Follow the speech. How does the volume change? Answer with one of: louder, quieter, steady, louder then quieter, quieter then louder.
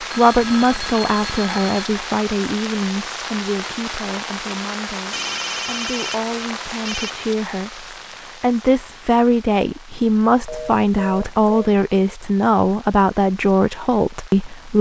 quieter then louder.